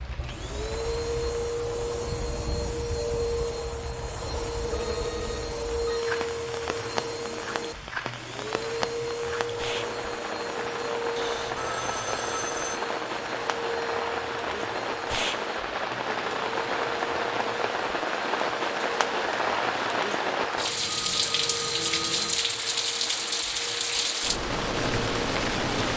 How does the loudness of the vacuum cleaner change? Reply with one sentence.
The loudness of the vacuum cleaner goes down.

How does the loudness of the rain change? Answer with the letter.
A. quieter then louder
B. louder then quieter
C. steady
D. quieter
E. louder
E.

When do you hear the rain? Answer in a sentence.
The rain can be heard from 0.0 to 25.9 s.